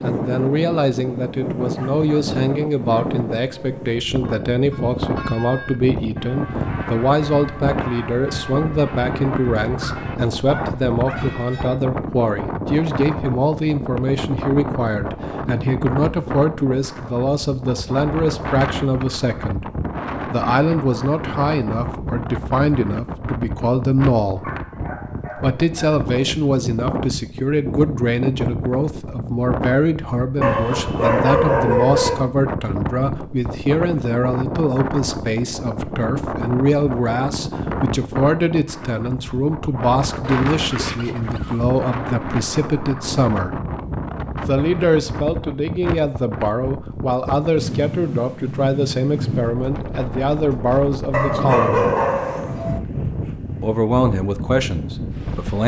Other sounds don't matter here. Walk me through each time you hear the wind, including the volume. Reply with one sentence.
The wind can be heard from 0.0 to 55.6 s, at a steady volume.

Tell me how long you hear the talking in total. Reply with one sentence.
The talking can be heard for 52 seconds in total.